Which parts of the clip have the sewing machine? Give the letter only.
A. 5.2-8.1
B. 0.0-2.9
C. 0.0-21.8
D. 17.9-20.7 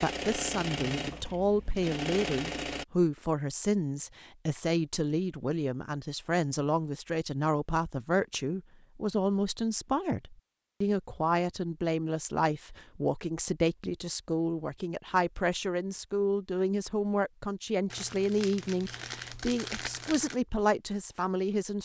B.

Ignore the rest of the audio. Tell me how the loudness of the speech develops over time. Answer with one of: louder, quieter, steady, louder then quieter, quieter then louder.
steady.